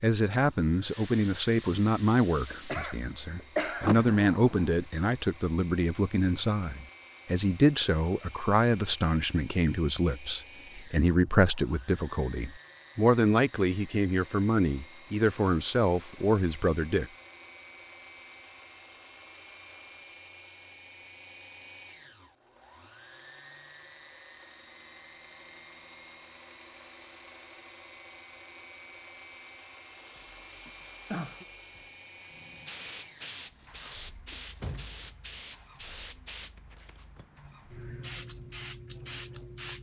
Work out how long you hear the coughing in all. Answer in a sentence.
You can hear the coughing for 2 seconds altogether.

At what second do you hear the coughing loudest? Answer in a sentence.
The volume of the coughing peaks at 4 seconds.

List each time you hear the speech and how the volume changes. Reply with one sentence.
You can hear the speech from 0.0 to 17.1 s, at a steady volume.